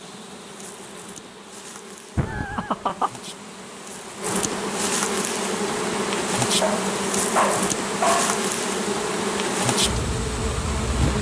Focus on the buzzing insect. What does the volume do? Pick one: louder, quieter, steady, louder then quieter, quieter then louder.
louder.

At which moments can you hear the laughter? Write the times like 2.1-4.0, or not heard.
2.1-3.1.